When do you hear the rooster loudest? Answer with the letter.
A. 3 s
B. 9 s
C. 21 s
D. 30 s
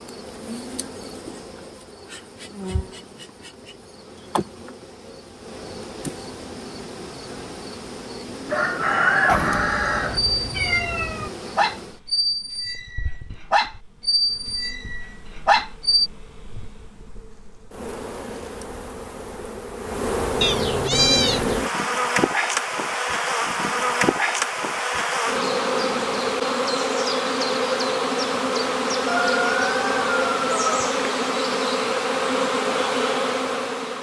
B.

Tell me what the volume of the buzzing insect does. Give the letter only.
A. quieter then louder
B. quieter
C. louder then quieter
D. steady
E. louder
E.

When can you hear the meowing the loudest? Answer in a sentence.
The volume of the meowing peaks at 21 seconds.